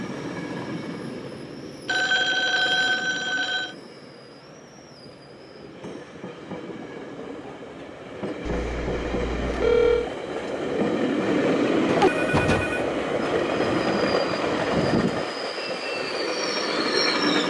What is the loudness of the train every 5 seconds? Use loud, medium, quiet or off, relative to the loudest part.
quiet, medium, loud, loud.